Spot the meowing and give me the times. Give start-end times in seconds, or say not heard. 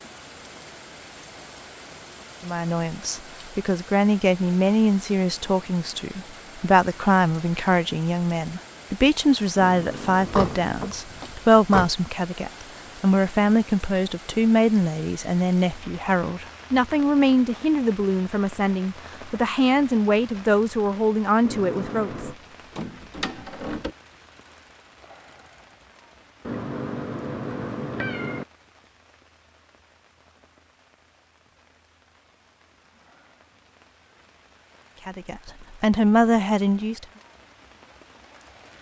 9.6-10.7, 21.4-22.4, 26.4-28.4.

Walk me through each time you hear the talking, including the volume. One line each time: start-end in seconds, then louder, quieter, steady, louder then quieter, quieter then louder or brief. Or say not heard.
2.4-22.1 steady
35.0-37.0 brief.